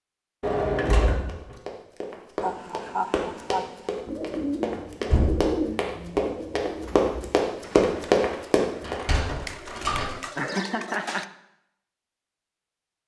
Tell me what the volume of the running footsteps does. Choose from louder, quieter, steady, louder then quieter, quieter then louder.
louder.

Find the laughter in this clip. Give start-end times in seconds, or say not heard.
2.4-3.9, 10.3-11.2.